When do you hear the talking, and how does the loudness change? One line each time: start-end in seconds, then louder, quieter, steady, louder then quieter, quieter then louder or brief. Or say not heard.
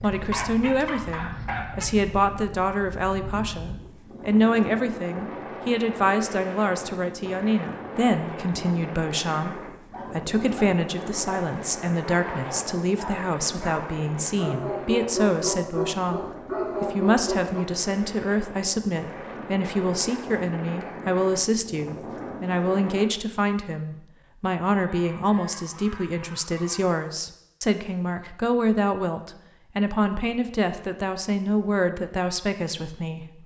0.0-33.4 steady.